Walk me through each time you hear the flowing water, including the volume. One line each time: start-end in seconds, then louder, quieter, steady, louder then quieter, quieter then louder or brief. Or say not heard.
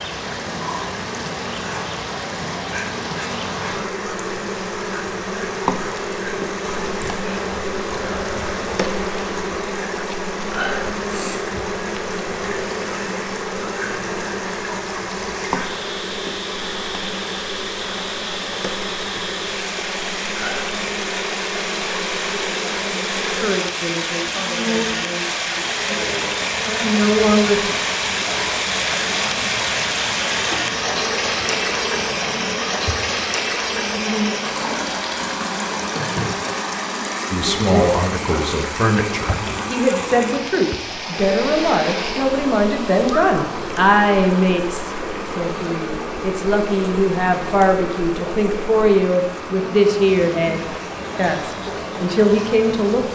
0.0-53.0 louder then quieter.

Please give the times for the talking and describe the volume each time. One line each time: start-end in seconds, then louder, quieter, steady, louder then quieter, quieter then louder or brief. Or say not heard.
23.3-27.8 quieter then louder
37.3-53.0 steady.